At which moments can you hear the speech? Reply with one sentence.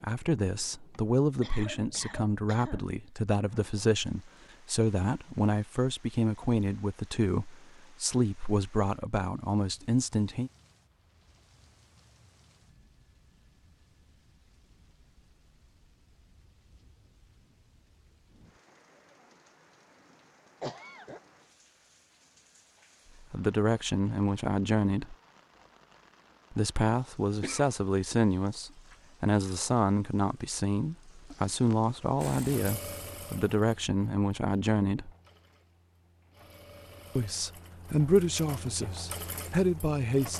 The speech can be heard from 0.0 to 10.5 s, from 23.3 to 25.1 s, from 26.5 to 35.1 s and from 37.1 to 40.3 s.